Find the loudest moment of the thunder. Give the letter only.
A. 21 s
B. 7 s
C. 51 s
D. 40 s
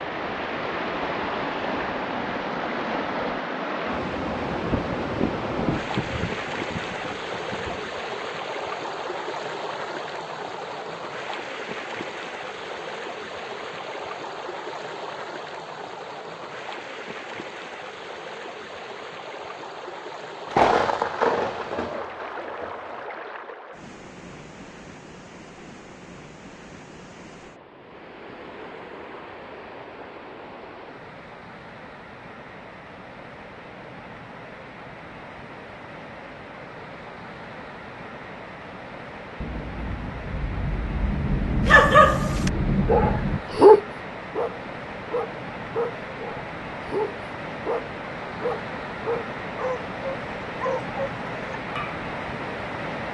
A.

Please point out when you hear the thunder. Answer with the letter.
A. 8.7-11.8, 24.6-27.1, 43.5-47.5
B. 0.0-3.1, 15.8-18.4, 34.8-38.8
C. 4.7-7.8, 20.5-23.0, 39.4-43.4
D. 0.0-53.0
C.